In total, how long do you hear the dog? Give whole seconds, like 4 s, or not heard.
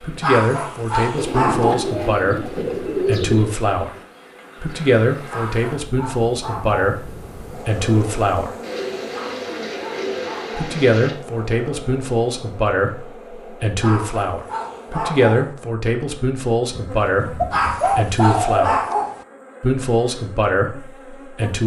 9 s.